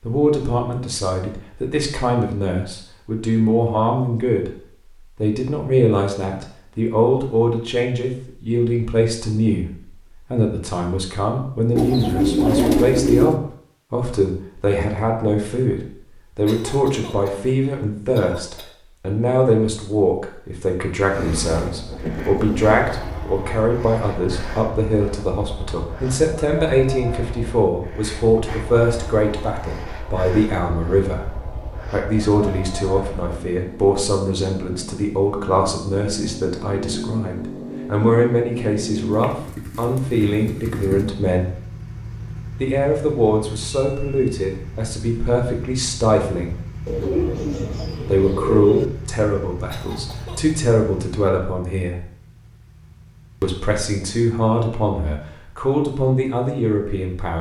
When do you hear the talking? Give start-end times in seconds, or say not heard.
0.0-4.5, 5.2-31.3, 31.9-41.6, 42.6-46.5, 48.0-52.0, 53.4-57.3.